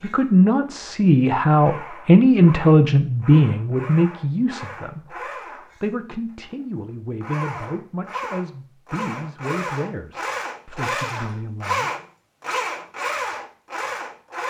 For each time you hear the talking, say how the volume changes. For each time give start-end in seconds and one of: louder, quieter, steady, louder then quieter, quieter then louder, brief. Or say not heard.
0.0-11.9 quieter.